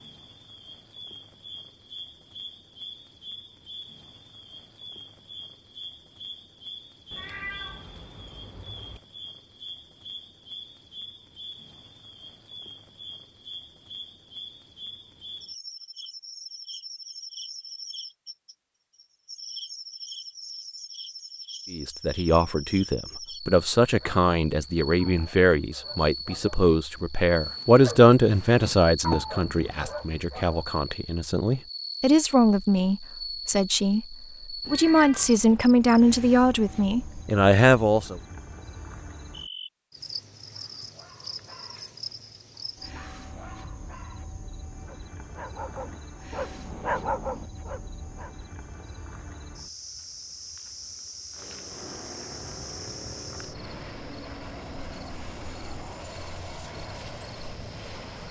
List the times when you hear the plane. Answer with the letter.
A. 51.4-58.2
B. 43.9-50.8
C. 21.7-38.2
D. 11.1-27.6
A.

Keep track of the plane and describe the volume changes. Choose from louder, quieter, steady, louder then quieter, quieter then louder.
steady.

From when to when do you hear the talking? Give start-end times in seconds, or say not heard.
21.7-38.2.